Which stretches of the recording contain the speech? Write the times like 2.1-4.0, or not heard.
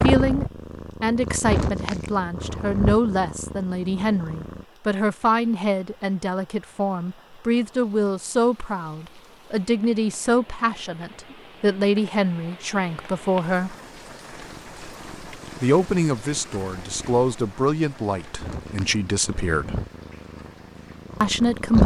0.0-13.8, 15.6-19.8, 21.2-21.8.